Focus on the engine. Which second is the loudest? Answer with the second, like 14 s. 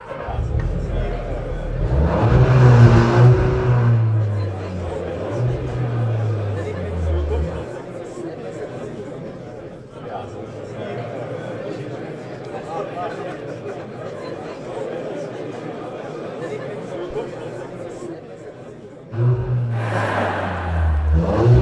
3 s.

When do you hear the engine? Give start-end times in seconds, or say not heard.
0.0-7.7, 19.1-21.5.